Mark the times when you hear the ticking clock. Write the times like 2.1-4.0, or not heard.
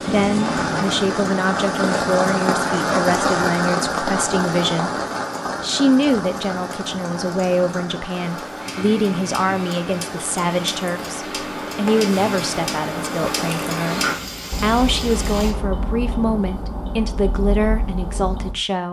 0.0-18.6.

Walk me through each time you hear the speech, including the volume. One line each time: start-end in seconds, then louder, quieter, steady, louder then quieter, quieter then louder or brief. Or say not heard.
0.1-4.9 steady
5.6-18.8 steady.